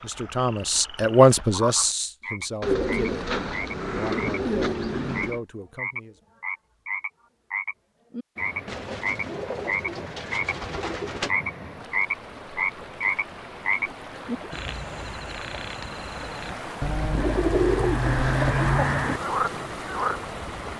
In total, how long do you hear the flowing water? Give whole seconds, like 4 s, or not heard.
12 s.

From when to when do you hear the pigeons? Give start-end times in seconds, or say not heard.
2.6-5.4, 8.7-11.3, 17.1-19.2.